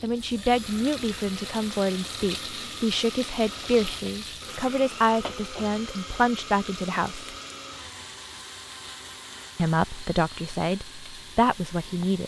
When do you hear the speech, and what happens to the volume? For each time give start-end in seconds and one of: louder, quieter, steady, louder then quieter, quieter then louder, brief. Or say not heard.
0.0-7.3 steady
9.6-12.2 brief.